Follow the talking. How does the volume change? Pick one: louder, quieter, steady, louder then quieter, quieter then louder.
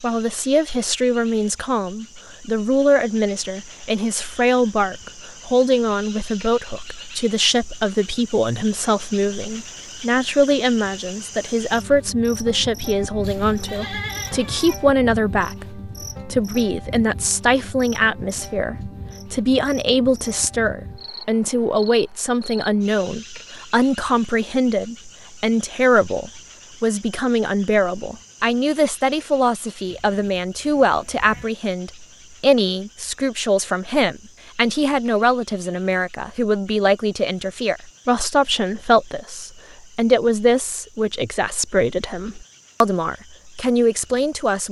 steady.